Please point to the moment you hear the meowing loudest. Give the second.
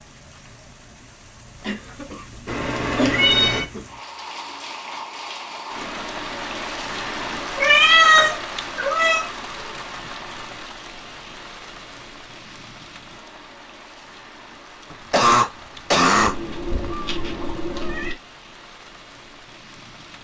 8 s.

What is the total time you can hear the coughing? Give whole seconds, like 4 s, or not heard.
4 s.